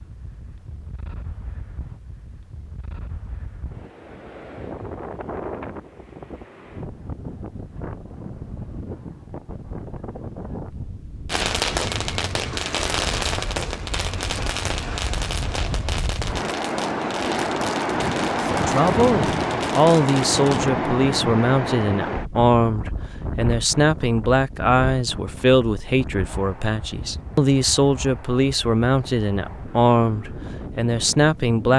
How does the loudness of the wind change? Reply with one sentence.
The volume of the wind goes up, then down.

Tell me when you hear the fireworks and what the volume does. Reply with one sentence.
You can hear the fireworks from 11.2 to 20.7 s, getting quieter.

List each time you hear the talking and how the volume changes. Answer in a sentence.
The talking can be heard from 18.5 to 31.7 s, at a steady volume.